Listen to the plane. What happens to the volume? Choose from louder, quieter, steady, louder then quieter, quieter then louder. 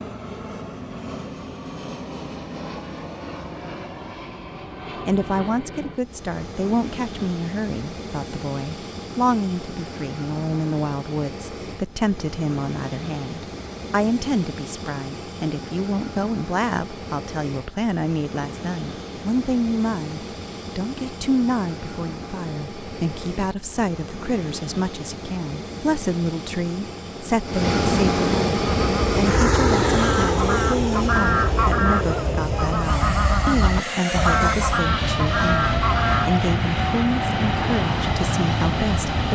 louder.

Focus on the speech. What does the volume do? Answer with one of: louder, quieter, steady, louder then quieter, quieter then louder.
steady.